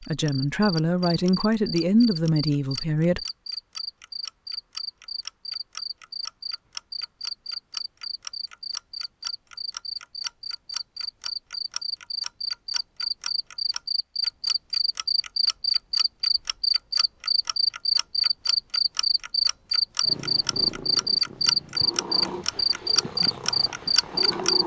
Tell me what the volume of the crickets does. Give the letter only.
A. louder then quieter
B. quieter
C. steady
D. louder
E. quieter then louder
D.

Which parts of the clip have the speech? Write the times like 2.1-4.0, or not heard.
0.0-3.2.